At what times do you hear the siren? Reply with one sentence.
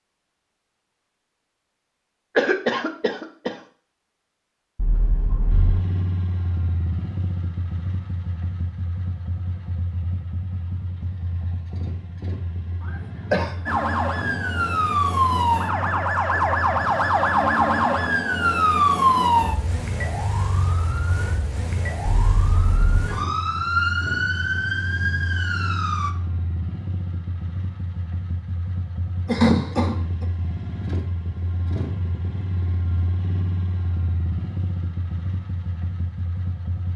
You can hear the siren from 13.7 to 26.1 s.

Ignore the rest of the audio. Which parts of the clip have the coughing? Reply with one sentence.
The coughing can be heard from 2.4 to 3.6 s, from 12.8 to 13.6 s and from 29.2 to 30.2 s.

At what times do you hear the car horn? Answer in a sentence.
The car horn can be heard from 4.8 to 5.8 s and from 22.2 to 23.1 s.